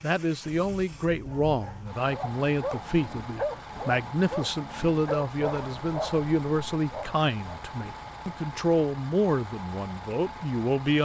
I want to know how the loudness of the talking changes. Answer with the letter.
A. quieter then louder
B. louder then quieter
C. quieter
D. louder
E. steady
E.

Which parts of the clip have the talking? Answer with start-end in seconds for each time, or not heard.
0.0-11.0.